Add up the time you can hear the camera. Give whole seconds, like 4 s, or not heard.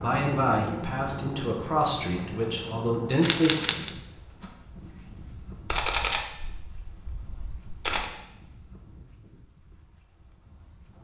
3 s.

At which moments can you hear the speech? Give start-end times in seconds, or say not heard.
0.0-3.5.